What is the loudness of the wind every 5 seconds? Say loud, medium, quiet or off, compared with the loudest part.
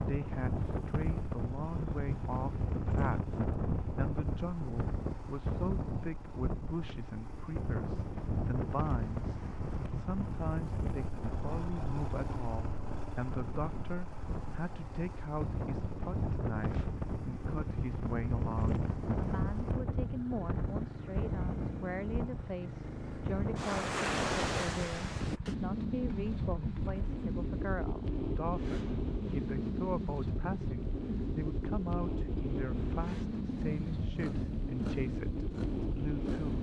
loud, loud, medium, loud, loud, loud, loud, loud.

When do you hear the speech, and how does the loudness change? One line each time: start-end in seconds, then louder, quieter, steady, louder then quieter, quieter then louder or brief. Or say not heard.
0.0-36.5 steady.